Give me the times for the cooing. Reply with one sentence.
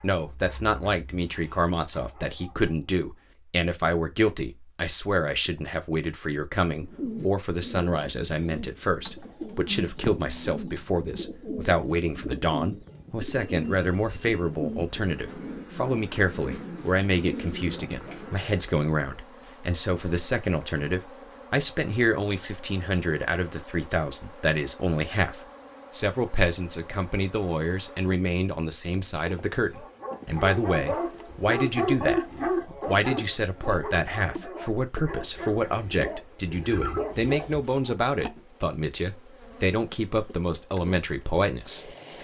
You can hear the cooing from 6.8 to 18.4 s.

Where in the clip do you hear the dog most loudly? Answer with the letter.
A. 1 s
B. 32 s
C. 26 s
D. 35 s
B.